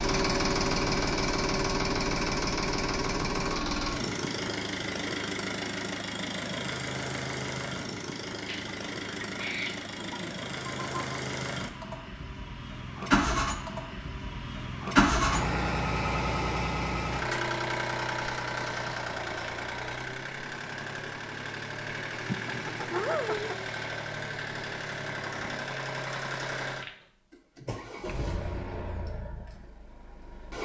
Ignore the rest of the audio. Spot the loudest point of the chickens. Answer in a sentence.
The volume of the chickens peaks at 23 seconds.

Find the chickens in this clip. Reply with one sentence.
The chickens can be heard from 8.4 to 11.2 s and from 22.2 to 23.6 s.